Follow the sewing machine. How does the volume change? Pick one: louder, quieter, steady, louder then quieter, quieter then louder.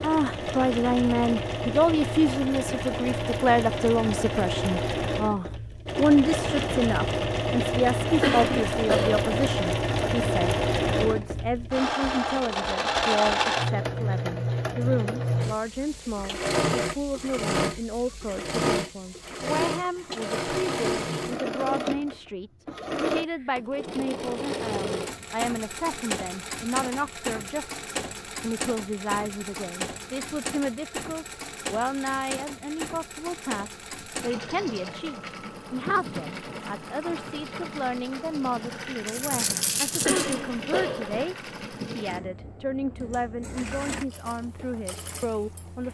quieter.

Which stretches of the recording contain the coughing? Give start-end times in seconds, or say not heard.
8.2-9.2, 40.0-41.2.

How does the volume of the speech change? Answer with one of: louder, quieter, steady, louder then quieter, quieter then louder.
quieter.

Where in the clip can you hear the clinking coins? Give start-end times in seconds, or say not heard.
39.0-40.4.